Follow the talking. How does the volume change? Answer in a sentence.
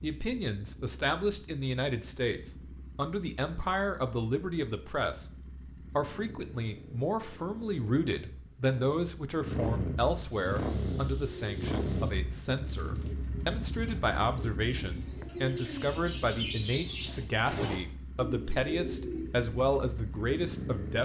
The loudness of the talking stays about the same.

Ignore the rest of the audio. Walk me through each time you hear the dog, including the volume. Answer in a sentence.
You can't hear the dog here.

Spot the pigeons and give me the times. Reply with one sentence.
You can hear the pigeons from 10.2 to 19.5 s.